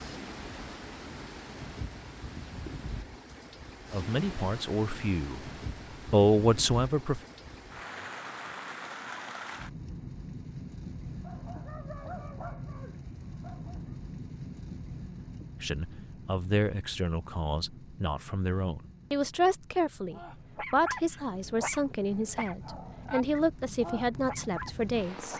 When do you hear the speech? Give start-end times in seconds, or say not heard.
3.9-5.5, 6.1-7.2, 15.6-25.3.